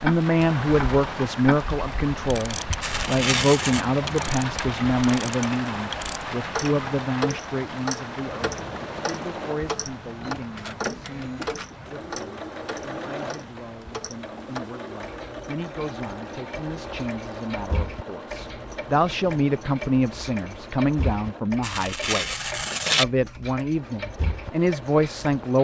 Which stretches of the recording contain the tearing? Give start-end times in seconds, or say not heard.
2.8-3.9, 21.6-23.1.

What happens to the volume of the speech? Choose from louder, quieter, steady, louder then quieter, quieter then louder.
quieter then louder.